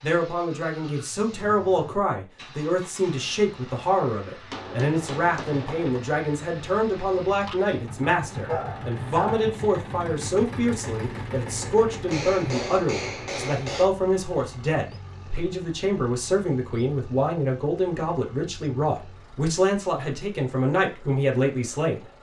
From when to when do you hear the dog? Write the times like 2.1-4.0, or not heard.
8.2-9.4.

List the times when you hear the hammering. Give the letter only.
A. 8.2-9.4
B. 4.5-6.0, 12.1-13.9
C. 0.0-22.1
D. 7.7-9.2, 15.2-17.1
B.